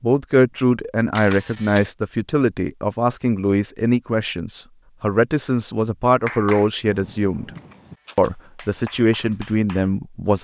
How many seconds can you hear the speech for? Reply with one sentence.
The speech can be heard for 10 seconds in total.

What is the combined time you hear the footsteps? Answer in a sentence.
You can't hear the footsteps here.